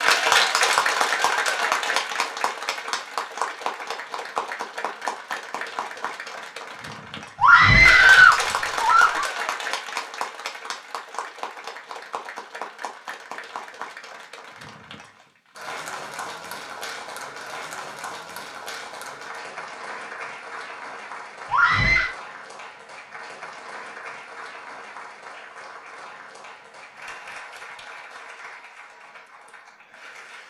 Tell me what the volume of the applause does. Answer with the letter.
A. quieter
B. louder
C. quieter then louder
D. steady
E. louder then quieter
A.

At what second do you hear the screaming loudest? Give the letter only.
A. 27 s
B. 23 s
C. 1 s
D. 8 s
D.